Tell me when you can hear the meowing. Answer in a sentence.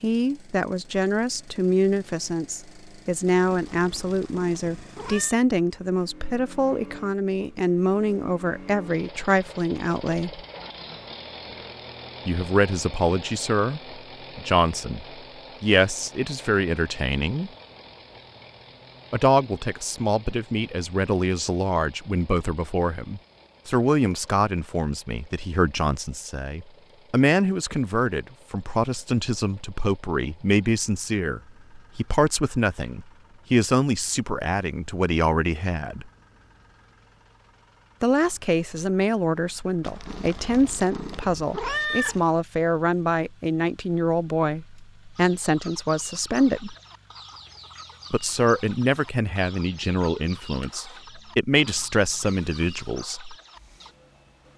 The meowing can be heard from 3.5 to 5.4 s and from 39.8 to 42.2 s.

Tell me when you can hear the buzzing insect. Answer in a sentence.
The buzzing insect can't be heard in this clip.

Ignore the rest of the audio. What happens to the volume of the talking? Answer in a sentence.
The volume of the talking stays about the same.